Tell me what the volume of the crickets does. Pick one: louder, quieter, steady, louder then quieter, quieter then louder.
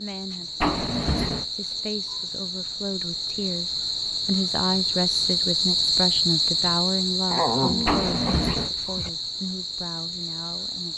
louder then quieter.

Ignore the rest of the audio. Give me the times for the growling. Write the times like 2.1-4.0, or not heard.
7.3-9.1.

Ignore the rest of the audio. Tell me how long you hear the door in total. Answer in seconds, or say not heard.
2 s.